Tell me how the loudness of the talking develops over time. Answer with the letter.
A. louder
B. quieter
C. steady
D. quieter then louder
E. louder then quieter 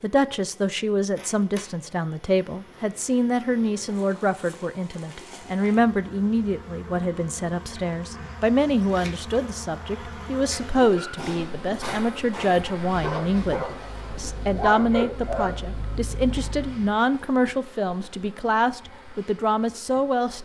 C.